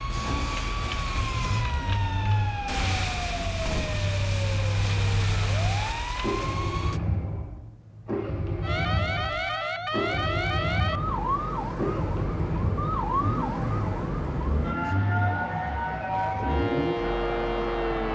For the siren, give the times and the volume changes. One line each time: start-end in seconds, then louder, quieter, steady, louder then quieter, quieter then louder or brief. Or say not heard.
0.0-7.0 steady
8.6-18.0 steady.